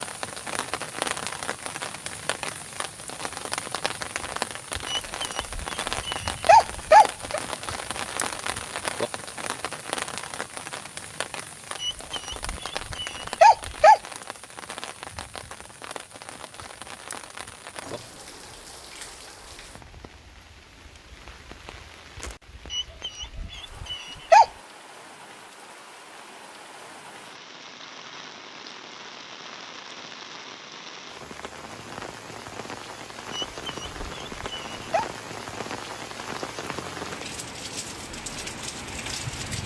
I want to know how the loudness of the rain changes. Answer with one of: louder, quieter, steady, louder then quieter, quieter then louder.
quieter then louder.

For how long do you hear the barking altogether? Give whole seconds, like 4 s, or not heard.
8 s.